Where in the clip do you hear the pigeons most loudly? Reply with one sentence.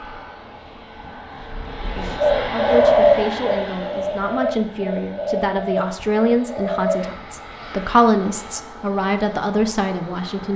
The loudest moment of the pigeons is at 3 seconds.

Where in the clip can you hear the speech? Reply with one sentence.
The speech can be heard from 1.8 to 10.5 s.